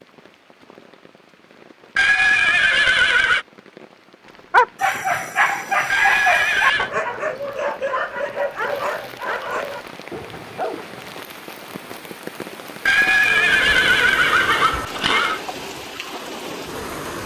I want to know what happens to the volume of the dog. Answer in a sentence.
The loudness of the dog goes down.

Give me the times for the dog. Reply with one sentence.
The dog can be heard from 4.5 to 11.2 s.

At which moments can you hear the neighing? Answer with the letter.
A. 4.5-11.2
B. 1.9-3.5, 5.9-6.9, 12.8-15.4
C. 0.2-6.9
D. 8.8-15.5
B.